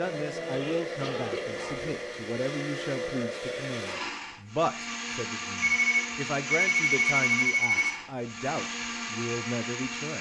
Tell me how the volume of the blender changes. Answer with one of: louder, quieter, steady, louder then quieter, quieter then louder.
steady.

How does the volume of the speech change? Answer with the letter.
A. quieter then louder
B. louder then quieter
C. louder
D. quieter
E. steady
E.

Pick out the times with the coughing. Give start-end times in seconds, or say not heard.
1.0-1.8.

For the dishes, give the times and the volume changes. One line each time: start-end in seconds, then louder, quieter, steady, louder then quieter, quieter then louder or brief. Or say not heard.
not heard.